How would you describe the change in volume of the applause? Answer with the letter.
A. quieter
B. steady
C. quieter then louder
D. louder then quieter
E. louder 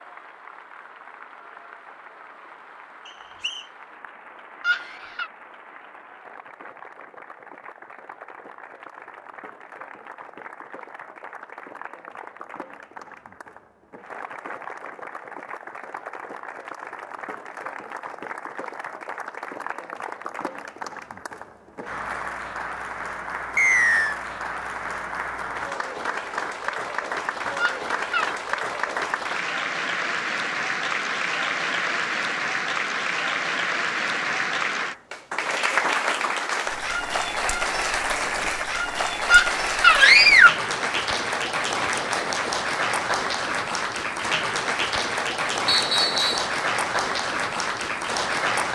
E.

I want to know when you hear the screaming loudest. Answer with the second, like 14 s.
40 s.